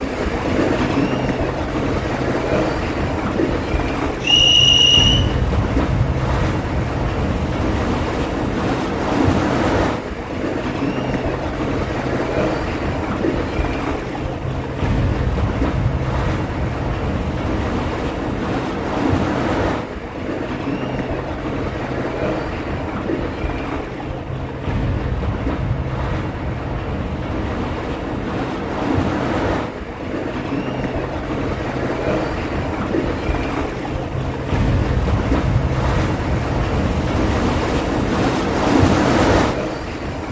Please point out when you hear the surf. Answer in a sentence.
You can hear the surf from 0.0 to 40.2 s.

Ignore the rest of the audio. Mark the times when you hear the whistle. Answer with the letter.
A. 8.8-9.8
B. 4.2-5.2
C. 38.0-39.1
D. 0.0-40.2
B.